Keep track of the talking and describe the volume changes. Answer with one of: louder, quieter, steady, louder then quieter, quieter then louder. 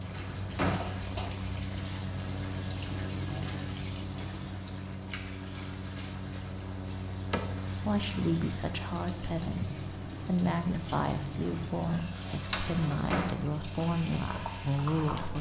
steady.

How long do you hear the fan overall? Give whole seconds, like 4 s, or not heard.
15 s.